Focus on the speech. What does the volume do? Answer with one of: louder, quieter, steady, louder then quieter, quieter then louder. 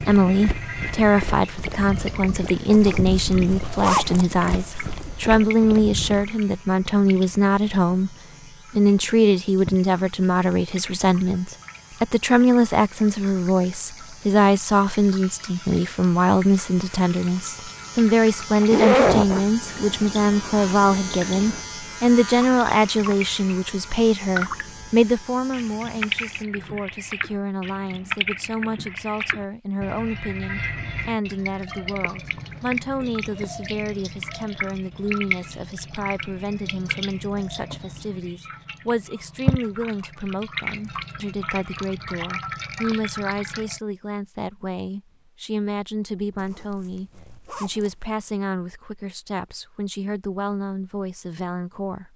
quieter.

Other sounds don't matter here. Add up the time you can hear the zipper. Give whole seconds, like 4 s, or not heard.
5 s.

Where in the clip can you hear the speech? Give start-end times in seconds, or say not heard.
0.0-52.1.